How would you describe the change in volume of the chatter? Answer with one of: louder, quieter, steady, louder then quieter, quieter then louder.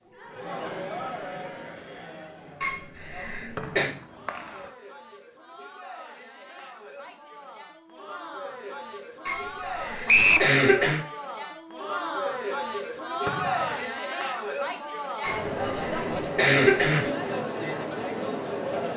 quieter then louder.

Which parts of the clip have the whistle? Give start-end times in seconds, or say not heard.
3.5-4.5, 10.1-10.5, 13.2-14.0.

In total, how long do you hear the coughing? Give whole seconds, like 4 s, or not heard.
5 s.